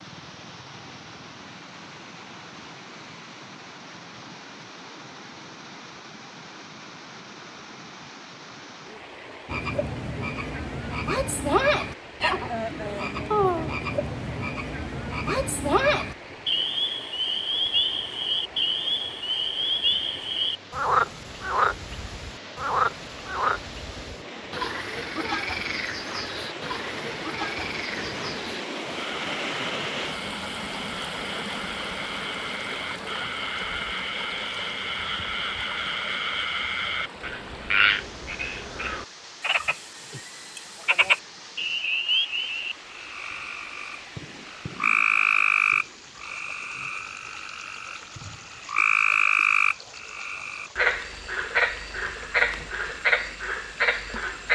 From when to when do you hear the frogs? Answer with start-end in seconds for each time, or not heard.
9.4-54.5.